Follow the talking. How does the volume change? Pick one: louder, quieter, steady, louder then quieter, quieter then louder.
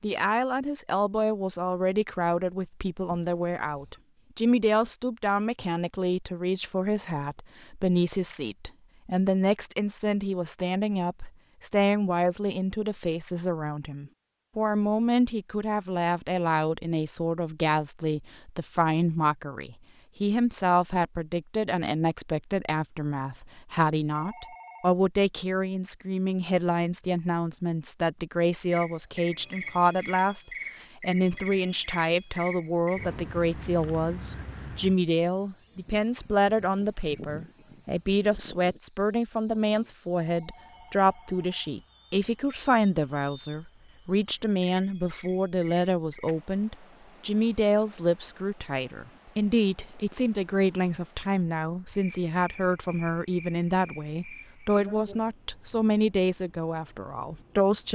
steady.